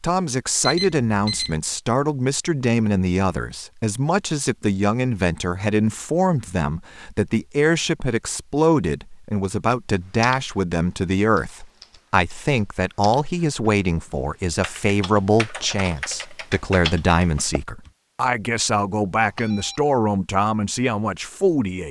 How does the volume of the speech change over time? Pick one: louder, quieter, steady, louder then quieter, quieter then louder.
steady.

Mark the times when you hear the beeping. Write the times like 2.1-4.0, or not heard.
0.6-1.6, 19.2-19.8.